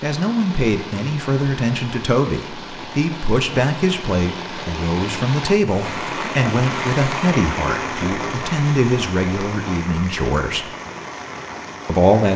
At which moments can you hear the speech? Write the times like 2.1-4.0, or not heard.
0.0-10.7, 11.8-12.3.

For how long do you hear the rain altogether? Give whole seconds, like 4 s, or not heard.
12 s.